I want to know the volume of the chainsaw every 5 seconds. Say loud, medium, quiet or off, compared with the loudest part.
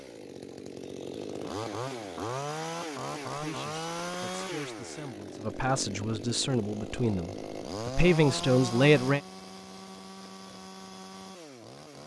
loud, loud, medium.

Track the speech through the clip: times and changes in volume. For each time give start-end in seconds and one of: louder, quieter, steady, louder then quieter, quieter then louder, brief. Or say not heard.
3.3-9.2 louder.